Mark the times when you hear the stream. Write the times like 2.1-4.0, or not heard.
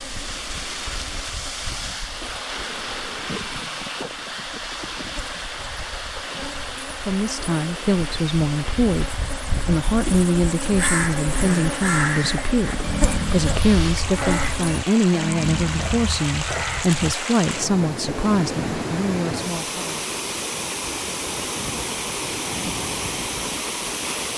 0.0-24.3.